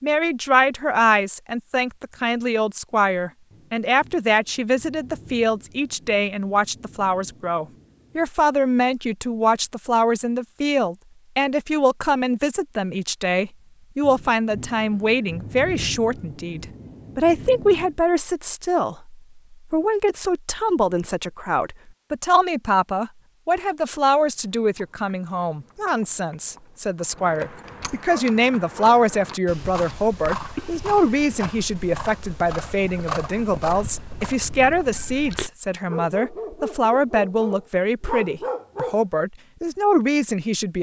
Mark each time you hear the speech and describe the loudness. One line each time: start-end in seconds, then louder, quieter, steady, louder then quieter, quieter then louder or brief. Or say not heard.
0.0-40.7 steady.